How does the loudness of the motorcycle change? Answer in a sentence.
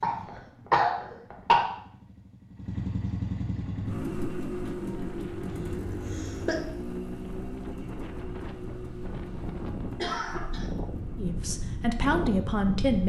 The loudness of the motorcycle goes up, then down.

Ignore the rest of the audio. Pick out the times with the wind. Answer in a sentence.
The wind can be heard from 3.5 to 13.0 s.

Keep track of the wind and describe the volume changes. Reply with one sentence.
The loudness of the wind goes up.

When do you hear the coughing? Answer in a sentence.
The coughing can be heard from 0.0 to 1.6 s, from 5.5 to 6.6 s and from 9.9 to 10.7 s.